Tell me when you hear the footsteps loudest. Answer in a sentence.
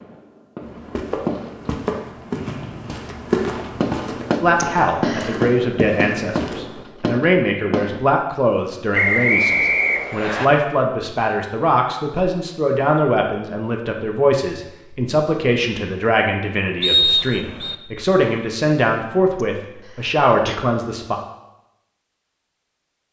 The volume of the footsteps peaks at 3 seconds.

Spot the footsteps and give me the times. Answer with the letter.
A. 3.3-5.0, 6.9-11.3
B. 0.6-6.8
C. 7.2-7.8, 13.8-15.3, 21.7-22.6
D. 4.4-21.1
B.